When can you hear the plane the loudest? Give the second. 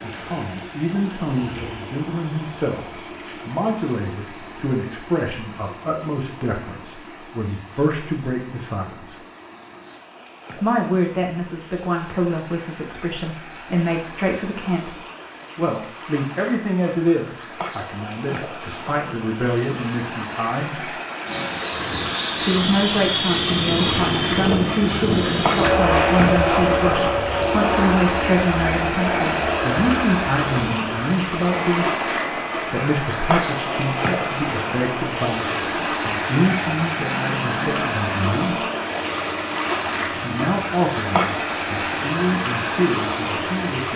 26 s.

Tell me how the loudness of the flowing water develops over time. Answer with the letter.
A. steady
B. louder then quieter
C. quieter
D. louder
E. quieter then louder
D.